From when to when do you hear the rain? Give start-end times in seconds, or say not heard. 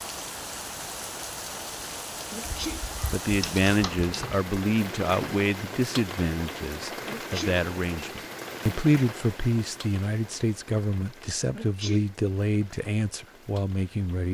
0.0-14.2.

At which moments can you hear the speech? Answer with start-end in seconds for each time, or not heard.
3.0-14.2.